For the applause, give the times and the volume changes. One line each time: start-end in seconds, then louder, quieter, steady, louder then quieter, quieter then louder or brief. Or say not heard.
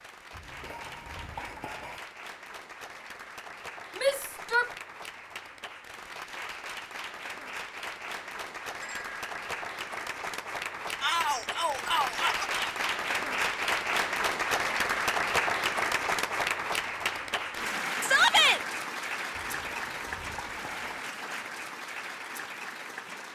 0.0-23.2 louder then quieter.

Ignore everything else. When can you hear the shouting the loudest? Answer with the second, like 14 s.
18 s.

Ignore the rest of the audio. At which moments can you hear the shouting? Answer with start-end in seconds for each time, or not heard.
4.0-4.7, 11.0-12.7, 18.0-18.6.